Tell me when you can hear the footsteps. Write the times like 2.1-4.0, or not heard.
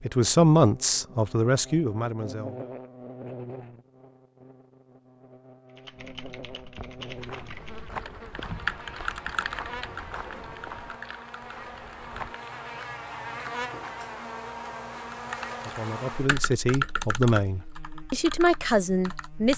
6.8-12.3.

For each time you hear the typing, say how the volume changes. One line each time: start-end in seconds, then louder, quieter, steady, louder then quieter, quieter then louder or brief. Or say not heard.
5.8-12.4 louder then quieter
15.1-19.5 louder then quieter.